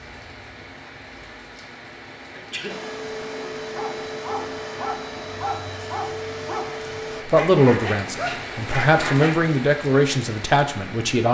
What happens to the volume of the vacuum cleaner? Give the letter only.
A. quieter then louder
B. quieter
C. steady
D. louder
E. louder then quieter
C.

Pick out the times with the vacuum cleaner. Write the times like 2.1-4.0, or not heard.
2.6-7.2.